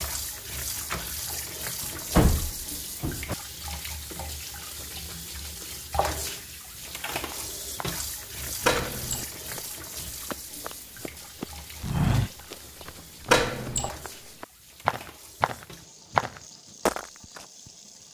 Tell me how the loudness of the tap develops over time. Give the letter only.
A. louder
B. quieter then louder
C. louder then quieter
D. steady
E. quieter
E.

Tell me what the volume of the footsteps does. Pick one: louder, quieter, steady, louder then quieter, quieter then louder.
louder.